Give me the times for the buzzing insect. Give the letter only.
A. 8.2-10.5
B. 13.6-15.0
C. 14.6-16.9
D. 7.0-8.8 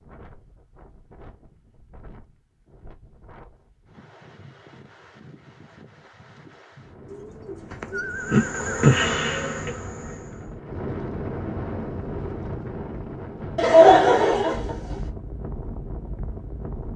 A.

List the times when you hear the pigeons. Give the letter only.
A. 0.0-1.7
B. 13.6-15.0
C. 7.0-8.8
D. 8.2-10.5
C.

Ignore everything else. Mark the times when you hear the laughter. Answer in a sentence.
You can hear the laughter from 13.6 to 15.0 s.